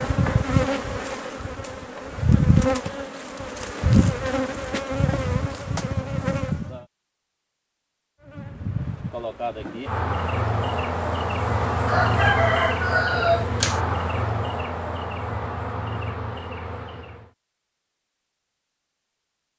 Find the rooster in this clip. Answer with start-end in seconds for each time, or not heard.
11.8-13.8.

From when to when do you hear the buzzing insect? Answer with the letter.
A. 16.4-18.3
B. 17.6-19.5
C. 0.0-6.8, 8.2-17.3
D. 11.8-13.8
C.